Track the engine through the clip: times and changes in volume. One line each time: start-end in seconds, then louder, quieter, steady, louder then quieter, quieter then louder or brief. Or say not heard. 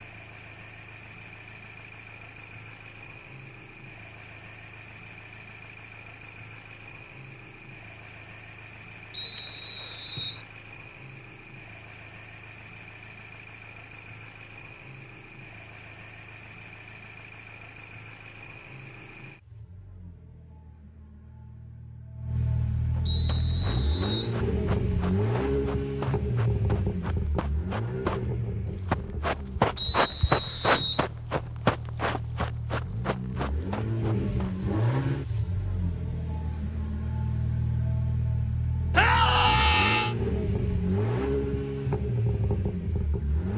0.0-43.5 louder.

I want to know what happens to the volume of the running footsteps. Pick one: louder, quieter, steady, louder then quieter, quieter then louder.
louder then quieter.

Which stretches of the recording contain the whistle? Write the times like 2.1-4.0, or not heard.
9.1-10.4, 23.1-24.4, 29.8-31.1.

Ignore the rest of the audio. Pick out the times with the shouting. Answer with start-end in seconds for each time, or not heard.
38.9-40.1.